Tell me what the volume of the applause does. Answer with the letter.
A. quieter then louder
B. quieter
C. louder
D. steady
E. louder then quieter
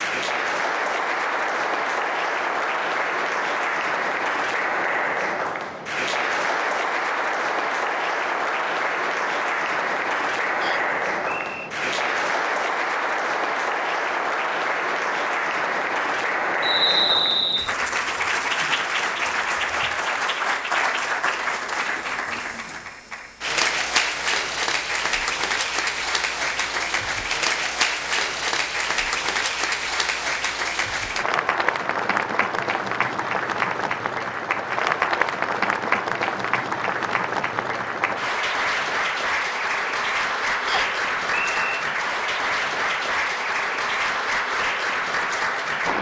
D.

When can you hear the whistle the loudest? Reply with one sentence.
The loudest moment of the whistle is at 17 seconds.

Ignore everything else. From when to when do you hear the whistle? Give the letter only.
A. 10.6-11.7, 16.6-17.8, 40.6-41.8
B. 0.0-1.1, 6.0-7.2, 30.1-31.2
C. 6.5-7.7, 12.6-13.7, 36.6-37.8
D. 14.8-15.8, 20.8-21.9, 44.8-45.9
A.